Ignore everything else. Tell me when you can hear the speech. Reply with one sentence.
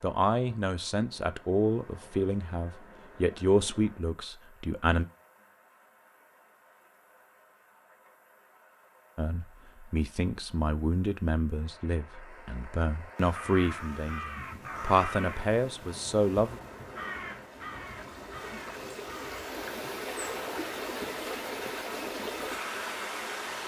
The speech can be heard from 0.0 to 5.0 s and from 9.2 to 16.6 s.